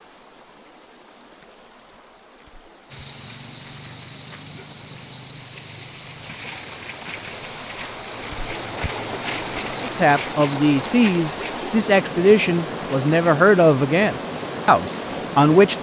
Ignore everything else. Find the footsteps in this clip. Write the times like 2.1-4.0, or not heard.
not heard.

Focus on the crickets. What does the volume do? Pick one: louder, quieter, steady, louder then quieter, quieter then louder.
quieter.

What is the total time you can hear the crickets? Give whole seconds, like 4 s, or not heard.
13 s.